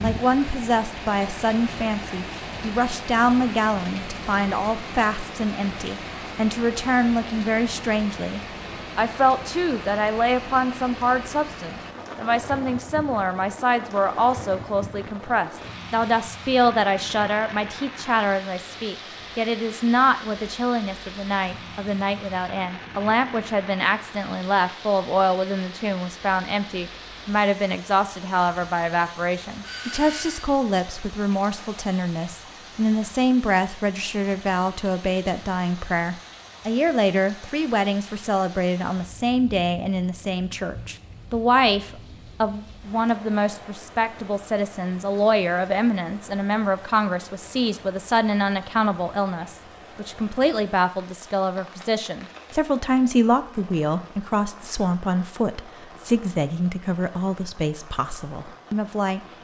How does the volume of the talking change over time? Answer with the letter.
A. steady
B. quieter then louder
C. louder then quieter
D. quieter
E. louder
A.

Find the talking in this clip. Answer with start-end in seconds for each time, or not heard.
0.0-59.2.